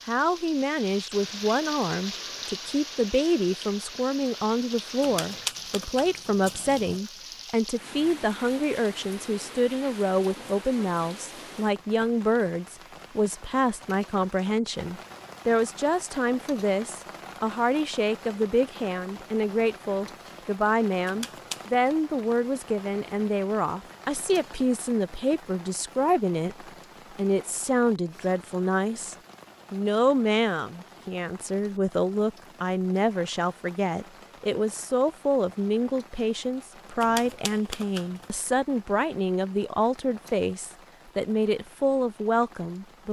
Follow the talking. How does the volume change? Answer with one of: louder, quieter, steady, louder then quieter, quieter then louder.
steady.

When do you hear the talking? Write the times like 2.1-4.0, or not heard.
0.1-43.0.